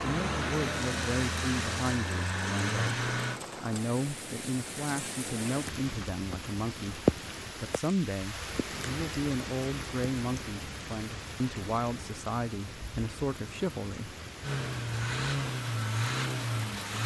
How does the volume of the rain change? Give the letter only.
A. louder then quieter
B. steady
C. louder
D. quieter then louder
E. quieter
A.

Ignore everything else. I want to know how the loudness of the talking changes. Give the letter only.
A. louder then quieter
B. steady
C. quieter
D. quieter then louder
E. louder
B.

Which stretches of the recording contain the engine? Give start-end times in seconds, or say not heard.
0.0-3.4, 14.4-17.0.